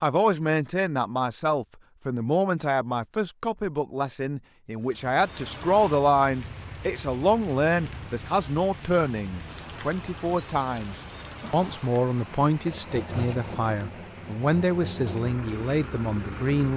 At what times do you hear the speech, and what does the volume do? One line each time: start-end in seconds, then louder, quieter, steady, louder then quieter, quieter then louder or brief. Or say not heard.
0.0-16.7 steady.